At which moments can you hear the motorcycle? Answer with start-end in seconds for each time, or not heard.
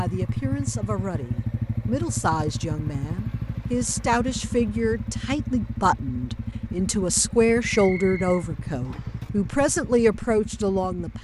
0.0-11.2.